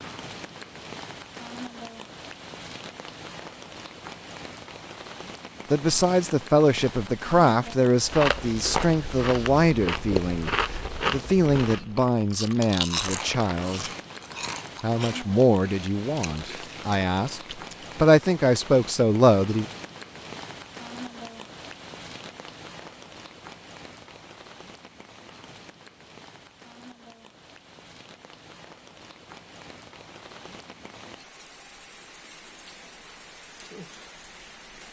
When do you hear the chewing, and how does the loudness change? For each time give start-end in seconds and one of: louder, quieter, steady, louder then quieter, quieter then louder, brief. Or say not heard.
8.0-17.9 quieter.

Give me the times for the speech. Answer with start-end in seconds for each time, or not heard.
5.7-13.8, 14.8-19.6.